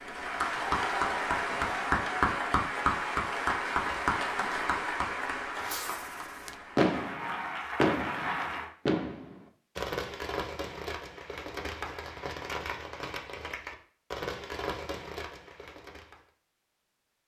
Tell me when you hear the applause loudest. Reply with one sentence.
The volume of the applause peaks at 2 seconds.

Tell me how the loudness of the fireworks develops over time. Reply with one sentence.
The loudness of the fireworks goes down.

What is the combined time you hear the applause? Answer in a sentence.
You can hear the applause for 9 seconds altogether.